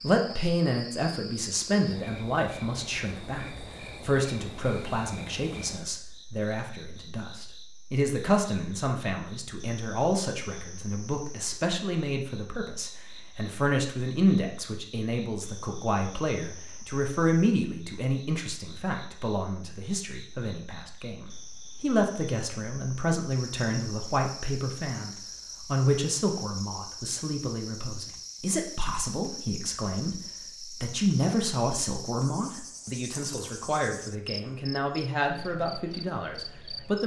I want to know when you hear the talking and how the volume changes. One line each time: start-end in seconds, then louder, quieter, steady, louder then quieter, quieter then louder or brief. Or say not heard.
0.0-37.0 steady.